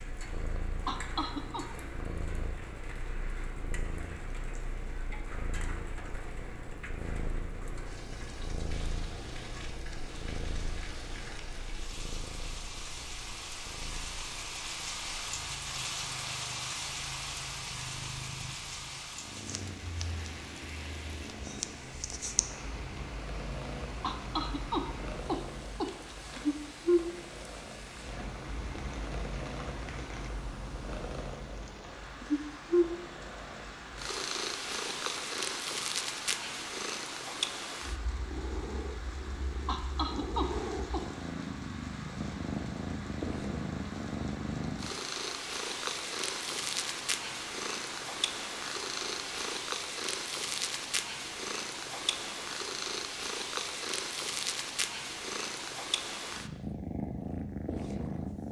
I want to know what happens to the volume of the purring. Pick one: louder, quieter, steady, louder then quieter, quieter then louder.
louder.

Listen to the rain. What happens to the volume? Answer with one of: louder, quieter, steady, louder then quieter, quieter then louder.
louder then quieter.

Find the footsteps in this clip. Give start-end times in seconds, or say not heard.
not heard.